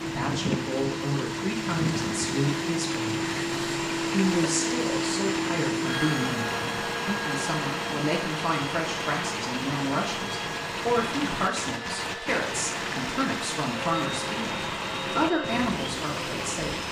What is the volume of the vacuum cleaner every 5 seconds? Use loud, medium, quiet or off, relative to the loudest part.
loud, loud, medium, medium.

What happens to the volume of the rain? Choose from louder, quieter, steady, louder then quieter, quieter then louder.
steady.